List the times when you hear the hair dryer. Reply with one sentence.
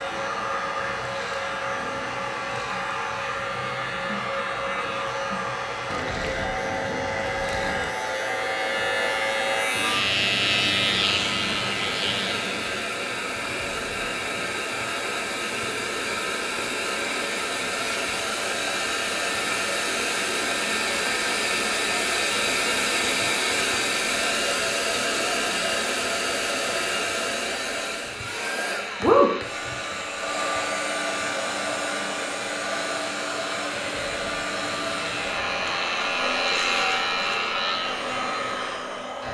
The hair dryer can be heard from 0.0 to 39.2 s.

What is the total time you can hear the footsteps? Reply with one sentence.
You can't hear the footsteps here.